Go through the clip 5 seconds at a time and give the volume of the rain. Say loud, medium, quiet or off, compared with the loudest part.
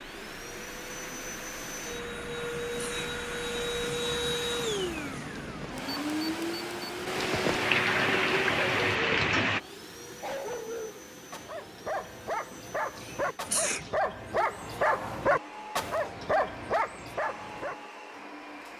quiet, loud, off, off.